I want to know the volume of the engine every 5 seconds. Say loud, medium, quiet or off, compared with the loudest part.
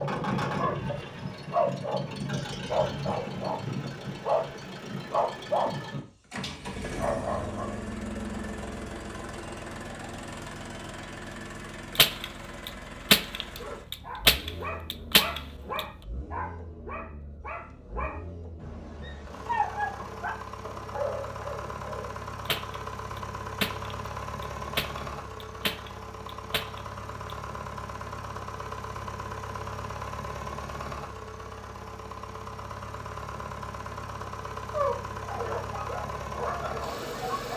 loud, loud, medium, medium, loud, loud, loud, loud.